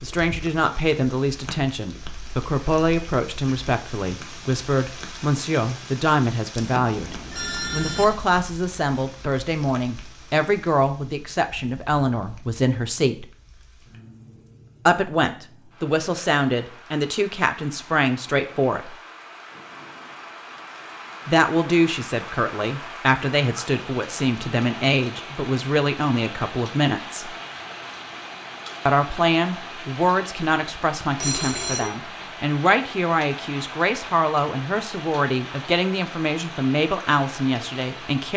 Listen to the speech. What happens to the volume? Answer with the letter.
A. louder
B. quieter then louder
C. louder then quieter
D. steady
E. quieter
D.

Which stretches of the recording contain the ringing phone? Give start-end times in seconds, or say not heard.
6.5-8.1, 31.2-31.9.